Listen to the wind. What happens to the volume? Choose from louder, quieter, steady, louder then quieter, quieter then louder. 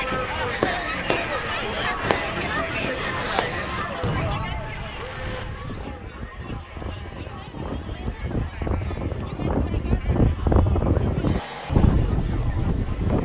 louder.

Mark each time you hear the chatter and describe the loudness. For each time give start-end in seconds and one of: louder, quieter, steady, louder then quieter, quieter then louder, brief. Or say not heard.
0.0-13.2 quieter.